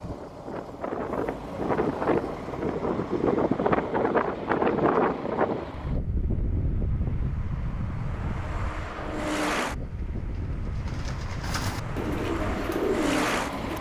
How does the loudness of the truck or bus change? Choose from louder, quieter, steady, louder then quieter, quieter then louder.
quieter then louder.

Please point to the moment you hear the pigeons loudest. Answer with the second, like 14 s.
13 s.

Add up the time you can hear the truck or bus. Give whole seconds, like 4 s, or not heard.
14 s.